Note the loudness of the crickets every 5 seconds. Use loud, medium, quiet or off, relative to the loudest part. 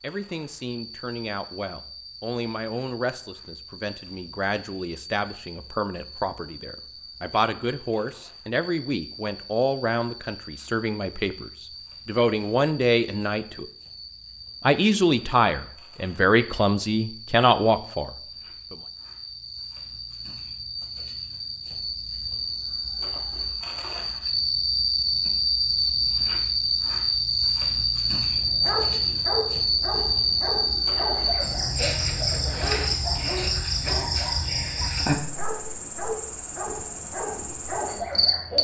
quiet, quiet, quiet, quiet, medium, loud, loud, medium.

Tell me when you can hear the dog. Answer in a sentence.
The dog can be heard from 28.4 to 38.5 s.